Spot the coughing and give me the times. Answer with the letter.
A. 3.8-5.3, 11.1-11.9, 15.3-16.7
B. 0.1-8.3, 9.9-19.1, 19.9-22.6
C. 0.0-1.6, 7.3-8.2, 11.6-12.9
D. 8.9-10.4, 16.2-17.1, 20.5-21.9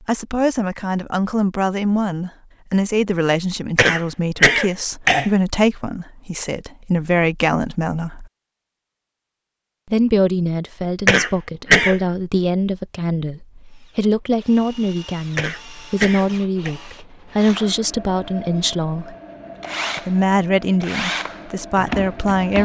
A.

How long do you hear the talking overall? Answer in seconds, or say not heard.
20 s.